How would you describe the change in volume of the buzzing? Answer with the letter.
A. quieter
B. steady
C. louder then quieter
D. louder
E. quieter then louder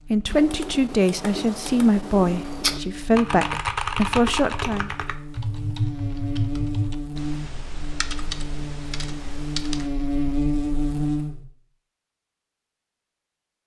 D.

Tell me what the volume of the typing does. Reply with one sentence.
The loudness of the typing goes up, then down.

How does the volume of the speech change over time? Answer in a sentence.
The loudness of the speech stays about the same.